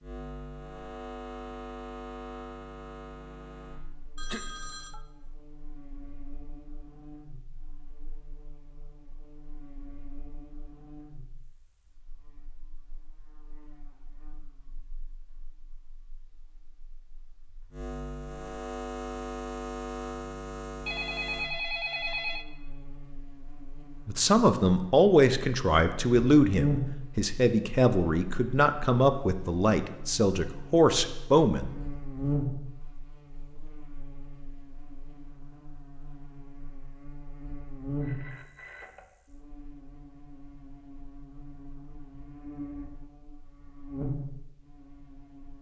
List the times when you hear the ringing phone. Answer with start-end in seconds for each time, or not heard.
4.2-5.0, 20.9-22.4, 38.0-39.1.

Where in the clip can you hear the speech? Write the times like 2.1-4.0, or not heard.
24.1-31.7.